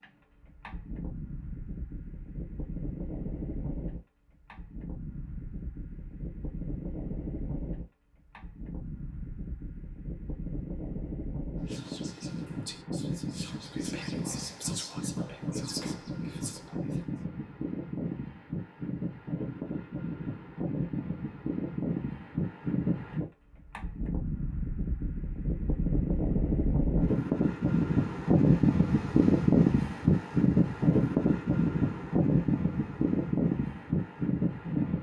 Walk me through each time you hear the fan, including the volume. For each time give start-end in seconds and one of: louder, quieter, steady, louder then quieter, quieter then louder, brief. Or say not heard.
0.0-34.9 louder.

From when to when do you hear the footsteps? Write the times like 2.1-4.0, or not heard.
not heard.